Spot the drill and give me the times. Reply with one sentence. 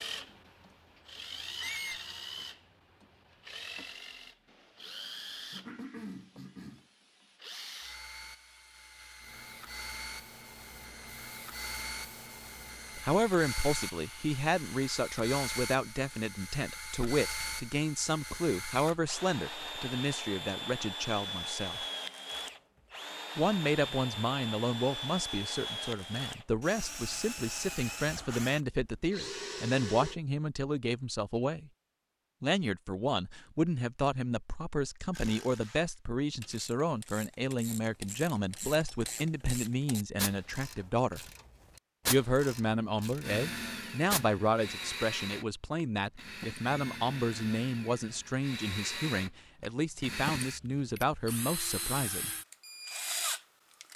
The drill can be heard from 0.0 to 30.1 s and from 43.2 to 53.9 s.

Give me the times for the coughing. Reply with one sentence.
The coughing can be heard from 5.5 to 6.8 s.